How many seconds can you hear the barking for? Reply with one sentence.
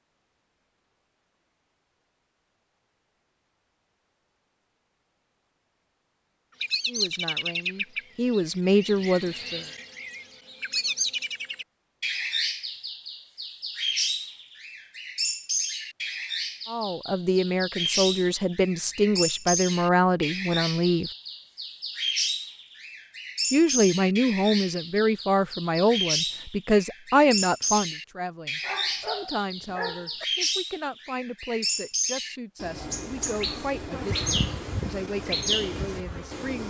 You can hear the barking for 2 seconds altogether.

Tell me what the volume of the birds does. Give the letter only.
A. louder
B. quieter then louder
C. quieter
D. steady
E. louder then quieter
D.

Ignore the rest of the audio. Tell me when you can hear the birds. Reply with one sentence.
The birds can be heard from 6.6 to 36.6 s.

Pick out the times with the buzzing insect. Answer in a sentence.
You can hear the buzzing insect from 33.9 to 36.6 s.